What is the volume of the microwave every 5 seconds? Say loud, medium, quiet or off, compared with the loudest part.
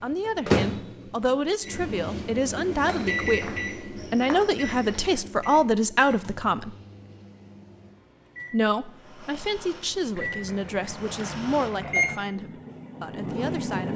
loud, quiet, loud.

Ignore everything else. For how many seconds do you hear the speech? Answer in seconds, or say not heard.
12 s.